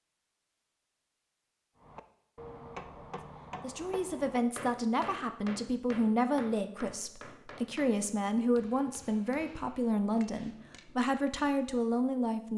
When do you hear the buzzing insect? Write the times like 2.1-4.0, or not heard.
not heard.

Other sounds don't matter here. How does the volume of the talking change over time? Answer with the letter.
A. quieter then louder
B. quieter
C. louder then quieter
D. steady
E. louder
D.